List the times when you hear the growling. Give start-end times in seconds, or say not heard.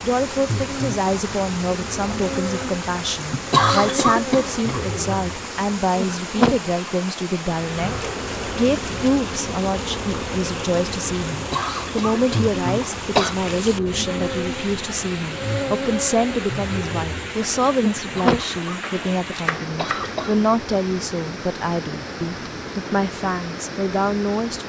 not heard.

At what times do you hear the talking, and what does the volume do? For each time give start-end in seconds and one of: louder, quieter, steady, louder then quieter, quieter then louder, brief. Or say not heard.
0.0-24.6 steady.